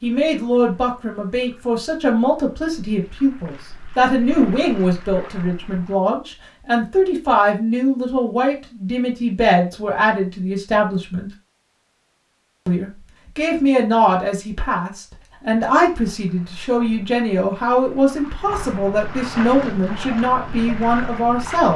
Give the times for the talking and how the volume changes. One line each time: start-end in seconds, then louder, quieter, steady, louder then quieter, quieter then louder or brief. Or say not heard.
0.0-11.3 steady
12.7-21.7 steady.